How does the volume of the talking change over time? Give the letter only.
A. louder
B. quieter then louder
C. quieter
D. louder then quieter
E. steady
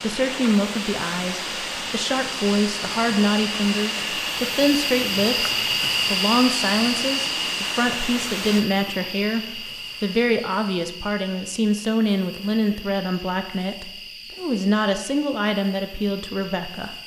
E.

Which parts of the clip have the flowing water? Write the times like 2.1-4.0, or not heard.
0.0-10.2.